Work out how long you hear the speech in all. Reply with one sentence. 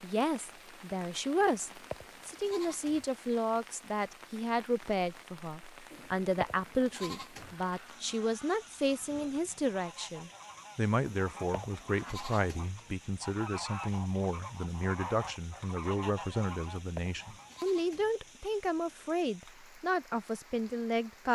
You can hear the speech for 21 seconds altogether.